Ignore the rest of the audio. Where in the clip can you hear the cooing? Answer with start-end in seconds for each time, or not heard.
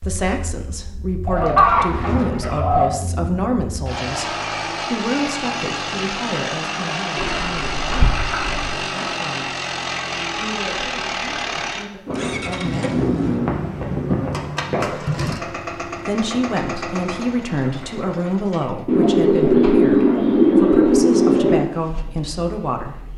1.2-2.9, 7.2-8.8, 12.1-14.9, 18.9-21.6.